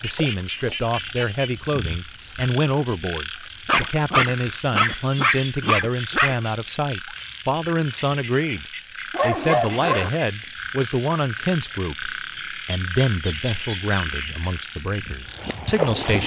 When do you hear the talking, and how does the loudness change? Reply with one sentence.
The talking can be heard from 0.0 to 16.2 s, at a steady volume.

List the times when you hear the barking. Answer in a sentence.
You can hear the barking from 3.6 to 6.3 s and from 9.1 to 10.1 s.